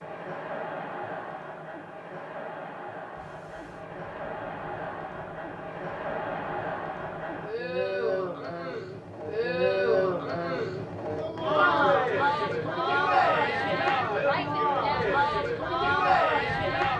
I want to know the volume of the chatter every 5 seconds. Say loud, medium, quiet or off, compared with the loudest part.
quiet, medium, loud, loud.